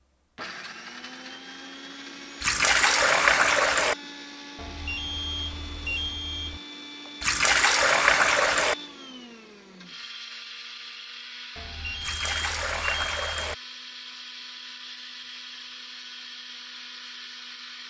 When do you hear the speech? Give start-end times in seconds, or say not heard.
not heard.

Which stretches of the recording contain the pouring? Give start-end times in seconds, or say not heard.
2.4-4.0, 7.2-8.8, 12.0-13.6.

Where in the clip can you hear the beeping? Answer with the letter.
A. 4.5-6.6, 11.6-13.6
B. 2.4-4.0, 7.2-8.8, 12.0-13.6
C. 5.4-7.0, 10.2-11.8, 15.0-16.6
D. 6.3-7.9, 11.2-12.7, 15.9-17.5
A.